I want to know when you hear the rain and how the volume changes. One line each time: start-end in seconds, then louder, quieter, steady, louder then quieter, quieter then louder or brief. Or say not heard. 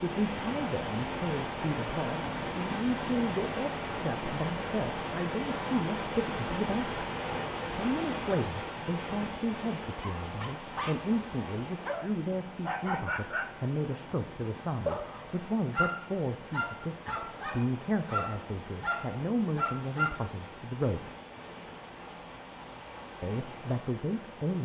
0.0-24.6 quieter.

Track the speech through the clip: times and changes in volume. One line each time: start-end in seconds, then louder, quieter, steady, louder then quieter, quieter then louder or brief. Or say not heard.
0.0-7.0 steady
7.8-21.1 steady
23.2-24.6 brief.